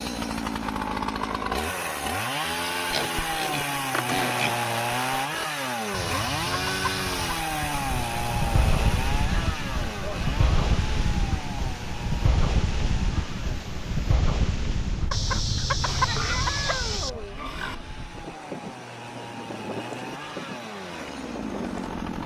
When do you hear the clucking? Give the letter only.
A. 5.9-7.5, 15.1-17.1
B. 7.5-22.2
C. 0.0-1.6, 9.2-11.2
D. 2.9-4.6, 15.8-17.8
A.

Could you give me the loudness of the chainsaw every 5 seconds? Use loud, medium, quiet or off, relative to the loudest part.
loud, loud, medium, quiet, medium.